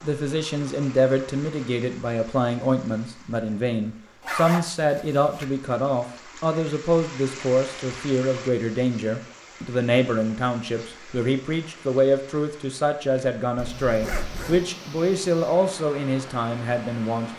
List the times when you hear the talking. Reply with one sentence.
You can hear the talking from 0.0 to 17.3 s.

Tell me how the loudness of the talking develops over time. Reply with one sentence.
The volume of the talking stays about the same.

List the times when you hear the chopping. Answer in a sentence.
You can't hear the chopping here.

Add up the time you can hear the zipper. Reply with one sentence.
The zipper can be heard for 2 seconds in total.